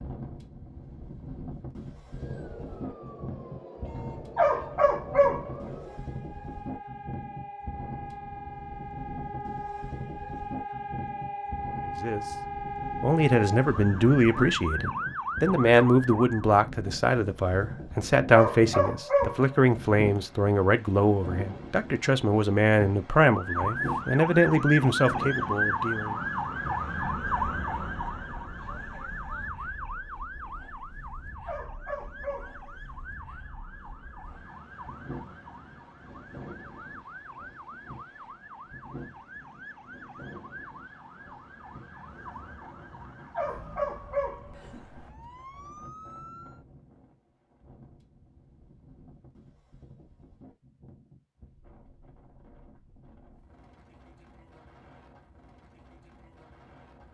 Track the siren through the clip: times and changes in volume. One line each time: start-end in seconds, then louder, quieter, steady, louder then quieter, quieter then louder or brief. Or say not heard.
2.0-16.5 louder
23.2-46.6 quieter.